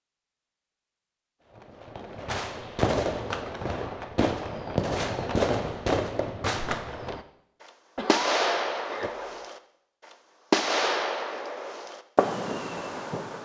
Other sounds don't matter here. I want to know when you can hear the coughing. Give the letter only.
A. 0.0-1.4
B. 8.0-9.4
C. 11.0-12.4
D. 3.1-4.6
B.